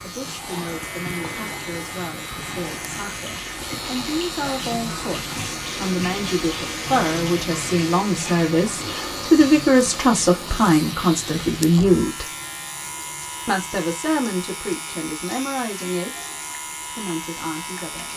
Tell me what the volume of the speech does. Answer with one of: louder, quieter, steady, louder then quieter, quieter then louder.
louder then quieter.